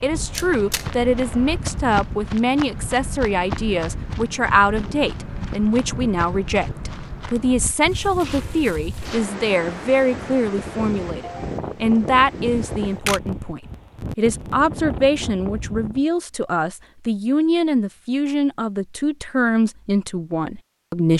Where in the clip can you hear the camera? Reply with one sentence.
The camera can be heard from 0.3 to 0.8 s and from 12.5 to 13.2 s.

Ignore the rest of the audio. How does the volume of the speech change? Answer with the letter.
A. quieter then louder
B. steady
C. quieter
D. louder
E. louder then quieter
B.